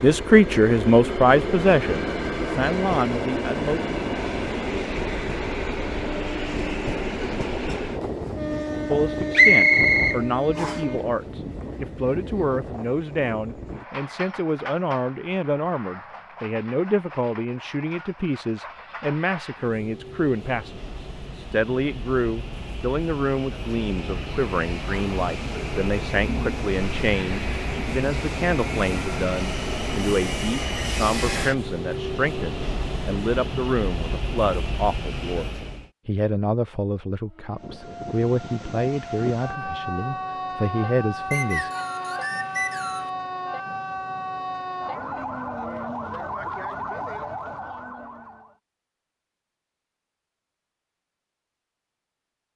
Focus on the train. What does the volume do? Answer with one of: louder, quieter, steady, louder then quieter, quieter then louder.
quieter then louder.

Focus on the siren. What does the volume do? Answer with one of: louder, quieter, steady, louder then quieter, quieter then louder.
steady.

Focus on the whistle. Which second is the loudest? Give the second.
10 s.